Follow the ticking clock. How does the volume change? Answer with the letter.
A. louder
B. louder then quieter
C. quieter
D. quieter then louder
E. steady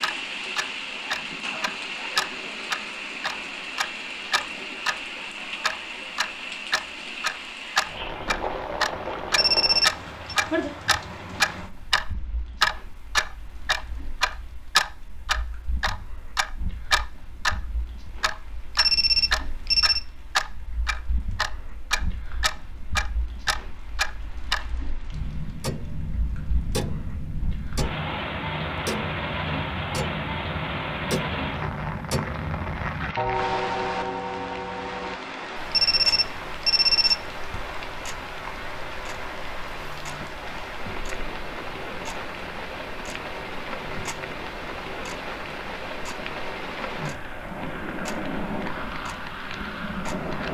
C.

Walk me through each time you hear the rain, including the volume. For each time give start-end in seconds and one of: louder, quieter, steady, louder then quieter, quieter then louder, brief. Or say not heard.
0.0-50.4 quieter then louder.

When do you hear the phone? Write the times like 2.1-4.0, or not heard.
9.3-10.3, 18.8-20.1, 35.7-37.6.